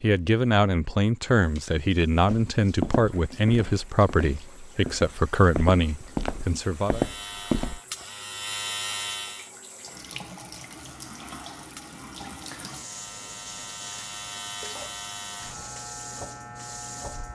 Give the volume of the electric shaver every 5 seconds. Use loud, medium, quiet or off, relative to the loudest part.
off, loud, medium, medium.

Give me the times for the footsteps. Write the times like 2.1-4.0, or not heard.
2.3-7.8.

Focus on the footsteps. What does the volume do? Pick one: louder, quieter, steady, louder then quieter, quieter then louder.
quieter then louder.